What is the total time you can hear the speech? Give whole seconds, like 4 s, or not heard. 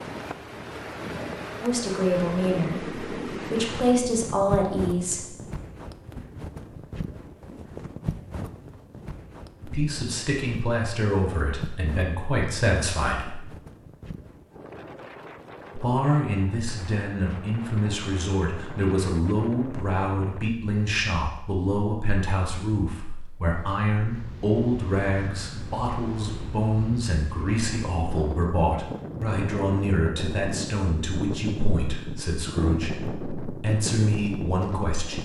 27 s.